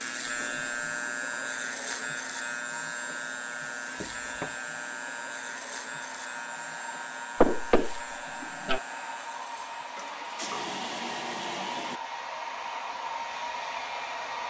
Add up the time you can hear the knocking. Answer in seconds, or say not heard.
2 s.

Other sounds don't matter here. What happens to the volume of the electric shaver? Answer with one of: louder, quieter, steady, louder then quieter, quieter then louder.
quieter.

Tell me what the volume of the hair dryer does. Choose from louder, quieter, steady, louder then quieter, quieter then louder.
louder.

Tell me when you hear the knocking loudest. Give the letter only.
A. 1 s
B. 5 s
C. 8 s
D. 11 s
C.